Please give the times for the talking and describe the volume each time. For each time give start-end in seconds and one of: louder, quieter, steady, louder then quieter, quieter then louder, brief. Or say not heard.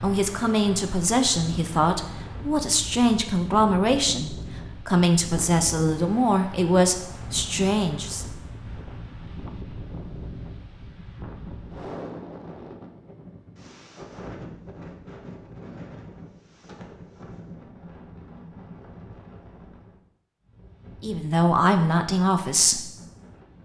0.0-8.2 steady
21.0-22.9 brief.